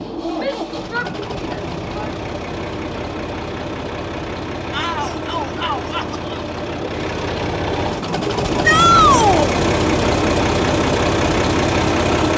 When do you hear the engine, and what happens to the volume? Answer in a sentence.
You can hear the engine from 0.0 to 12.3 s, getting louder.